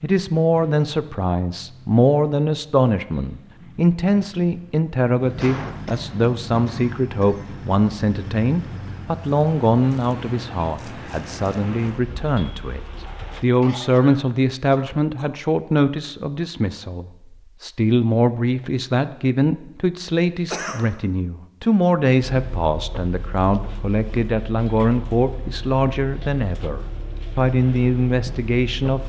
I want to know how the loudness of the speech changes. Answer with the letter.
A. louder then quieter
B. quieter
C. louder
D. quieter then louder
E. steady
E.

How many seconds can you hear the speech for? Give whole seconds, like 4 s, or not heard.
29 s.